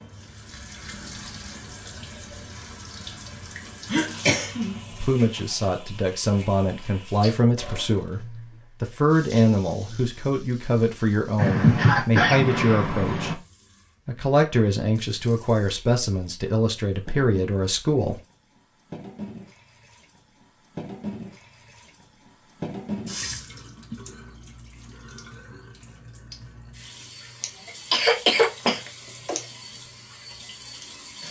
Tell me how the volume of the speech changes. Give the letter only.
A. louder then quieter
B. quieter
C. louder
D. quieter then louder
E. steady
E.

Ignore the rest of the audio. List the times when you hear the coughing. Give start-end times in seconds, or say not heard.
3.9-5.2, 11.3-13.3, 27.4-29.4.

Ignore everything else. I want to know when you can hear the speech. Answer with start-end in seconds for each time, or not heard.
4.9-13.4, 14.1-18.2.